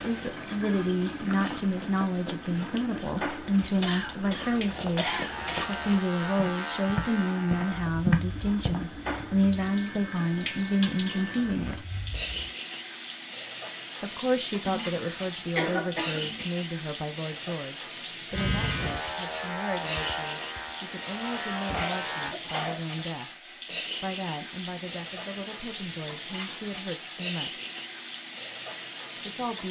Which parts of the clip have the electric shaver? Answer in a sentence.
You can hear the electric shaver from 5.2 to 12.6 s and from 18.3 to 22.4 s.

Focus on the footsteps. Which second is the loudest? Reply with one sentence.
The loudest moment of the footsteps is at 8 seconds.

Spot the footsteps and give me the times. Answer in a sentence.
The footsteps can be heard from 0.0 to 9.2 s.